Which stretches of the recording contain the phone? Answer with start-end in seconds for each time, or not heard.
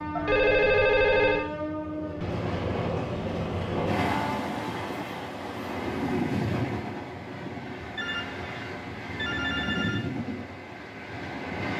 0.1-1.4, 8.0-10.0.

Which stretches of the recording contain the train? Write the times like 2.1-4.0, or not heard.
0.0-11.7.